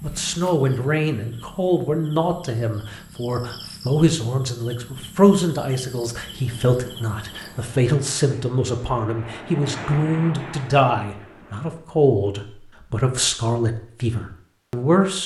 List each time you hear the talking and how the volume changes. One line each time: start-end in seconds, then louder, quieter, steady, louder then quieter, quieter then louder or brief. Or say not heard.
0.0-15.2 steady.